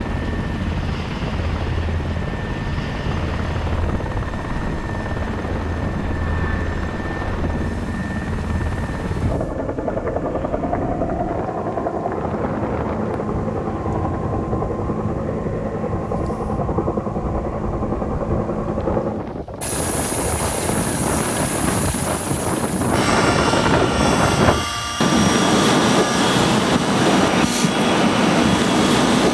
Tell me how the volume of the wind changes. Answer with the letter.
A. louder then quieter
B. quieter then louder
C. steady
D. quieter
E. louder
E.